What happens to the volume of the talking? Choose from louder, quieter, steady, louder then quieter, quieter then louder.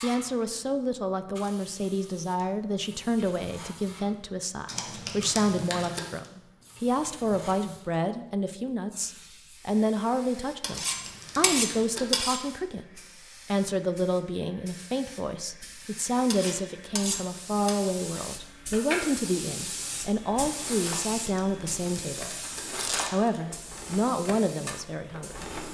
steady.